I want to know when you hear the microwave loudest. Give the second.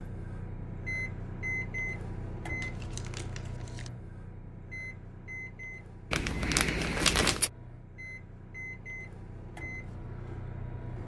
1 s.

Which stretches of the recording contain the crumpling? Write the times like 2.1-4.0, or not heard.
2.6-3.9, 6.1-7.5.